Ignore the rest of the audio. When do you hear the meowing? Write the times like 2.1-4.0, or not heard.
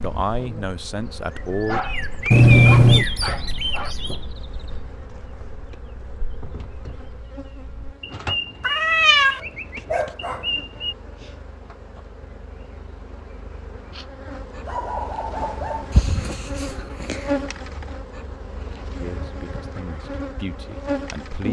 2.3-3.0, 8.6-9.4, 15.9-17.2.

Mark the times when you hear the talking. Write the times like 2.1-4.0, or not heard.
0.0-1.8, 19.0-21.4.